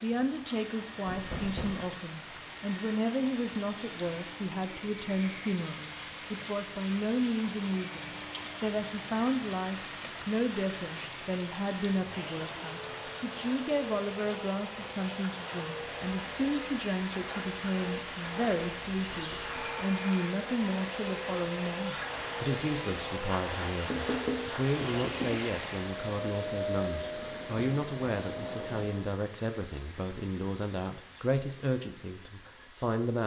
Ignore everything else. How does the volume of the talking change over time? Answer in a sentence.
The loudness of the talking stays about the same.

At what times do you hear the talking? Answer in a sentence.
The talking can be heard from 0.0 to 33.2 s.